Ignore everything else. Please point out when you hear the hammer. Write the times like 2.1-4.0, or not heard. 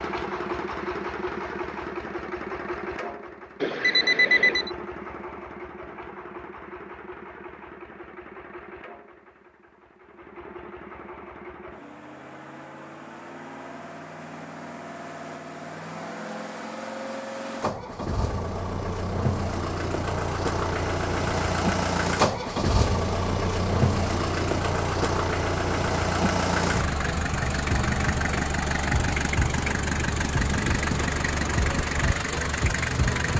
not heard.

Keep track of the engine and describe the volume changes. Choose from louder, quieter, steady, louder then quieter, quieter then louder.
quieter then louder.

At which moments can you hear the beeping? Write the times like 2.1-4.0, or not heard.
3.6-4.7.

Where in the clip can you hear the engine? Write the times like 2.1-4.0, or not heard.
0.0-33.3.